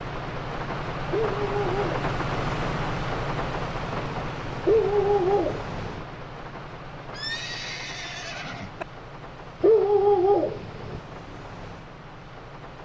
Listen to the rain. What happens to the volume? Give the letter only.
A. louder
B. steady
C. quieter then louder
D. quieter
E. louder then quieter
D.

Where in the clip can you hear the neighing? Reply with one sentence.
The neighing can be heard from 7.1 to 8.8 s.